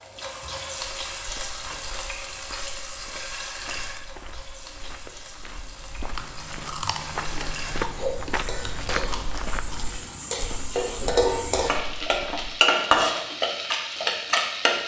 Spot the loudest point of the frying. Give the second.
13 s.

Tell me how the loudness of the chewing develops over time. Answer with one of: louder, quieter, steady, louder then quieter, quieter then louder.
quieter.